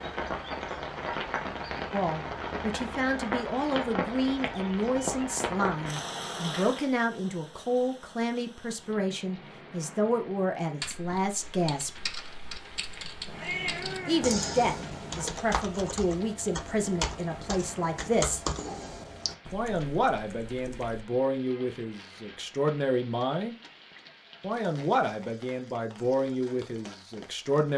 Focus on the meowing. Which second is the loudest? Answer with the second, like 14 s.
14 s.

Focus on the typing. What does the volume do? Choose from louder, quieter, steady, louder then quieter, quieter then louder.
louder then quieter.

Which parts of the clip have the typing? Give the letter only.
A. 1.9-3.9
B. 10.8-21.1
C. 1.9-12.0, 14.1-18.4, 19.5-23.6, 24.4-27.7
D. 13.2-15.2
B.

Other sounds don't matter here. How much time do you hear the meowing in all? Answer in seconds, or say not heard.
2 s.